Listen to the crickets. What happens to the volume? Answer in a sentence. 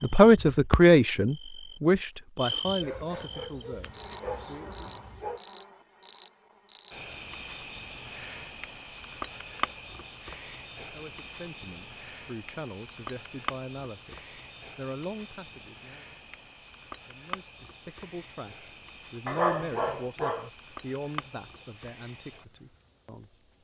The loudness of the crickets goes down.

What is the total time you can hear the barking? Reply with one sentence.
The barking can be heard for 4 seconds in total.